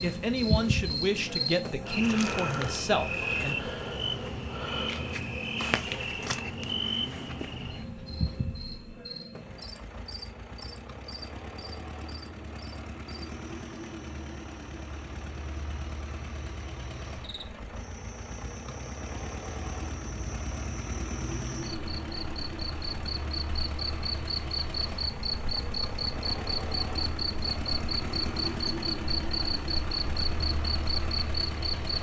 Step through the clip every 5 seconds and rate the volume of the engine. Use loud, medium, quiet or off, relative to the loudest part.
medium, medium, medium, medium, loud, loud, loud.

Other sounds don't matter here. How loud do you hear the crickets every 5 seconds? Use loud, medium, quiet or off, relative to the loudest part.
loud, loud, quiet, quiet, medium, loud, loud.